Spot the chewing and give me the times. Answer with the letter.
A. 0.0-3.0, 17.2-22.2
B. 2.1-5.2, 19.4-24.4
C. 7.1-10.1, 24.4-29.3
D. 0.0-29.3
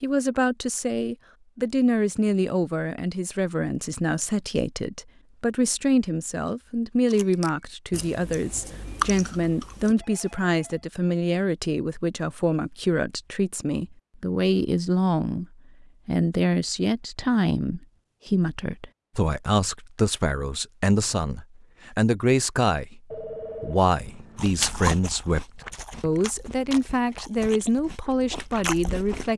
C.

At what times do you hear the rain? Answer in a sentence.
The rain can't be heard in this clip.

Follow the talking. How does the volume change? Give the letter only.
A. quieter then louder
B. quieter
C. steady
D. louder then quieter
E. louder
C.